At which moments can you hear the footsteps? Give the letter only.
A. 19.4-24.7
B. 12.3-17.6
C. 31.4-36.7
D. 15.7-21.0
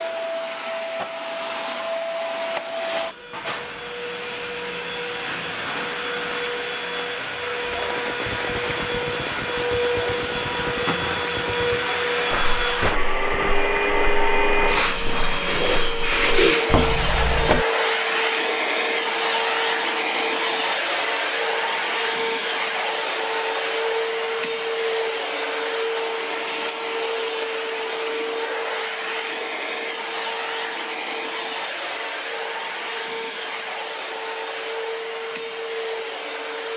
B.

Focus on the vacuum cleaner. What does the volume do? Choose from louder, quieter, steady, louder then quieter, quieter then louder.
louder then quieter.